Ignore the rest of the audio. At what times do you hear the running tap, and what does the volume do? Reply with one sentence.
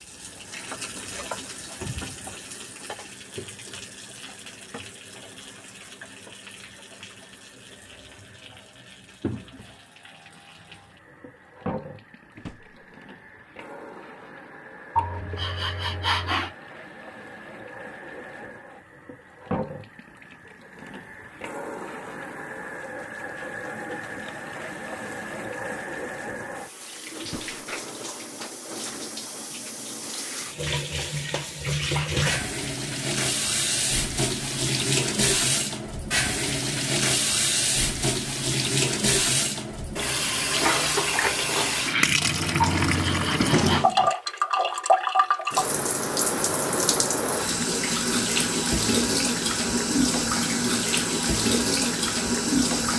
The running tap can be heard from 0.0 to 52.9 s, getting louder.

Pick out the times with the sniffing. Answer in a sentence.
The sniffing can be heard from 14.9 to 16.5 s and from 42.6 to 43.9 s.